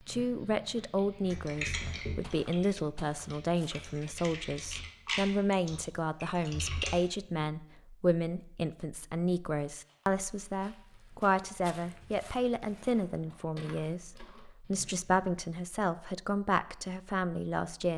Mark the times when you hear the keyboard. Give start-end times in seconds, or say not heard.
0.9-7.5.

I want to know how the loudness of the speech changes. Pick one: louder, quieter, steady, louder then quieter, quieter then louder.
steady.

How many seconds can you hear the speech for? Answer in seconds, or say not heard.
18 s.